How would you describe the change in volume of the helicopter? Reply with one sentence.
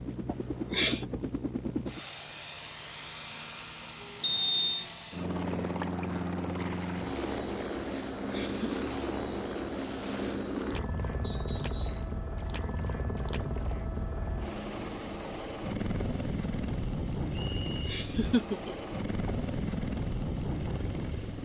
The volume of the helicopter stays about the same.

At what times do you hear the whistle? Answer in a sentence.
You can hear the whistle from 4.2 to 4.8 s, from 11.2 to 12.1 s and from 17.3 to 18.0 s.